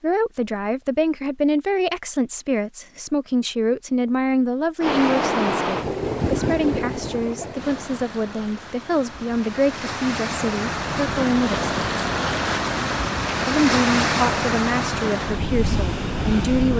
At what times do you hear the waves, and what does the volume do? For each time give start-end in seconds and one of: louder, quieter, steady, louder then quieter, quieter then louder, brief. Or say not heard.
4.8-16.7 quieter then louder.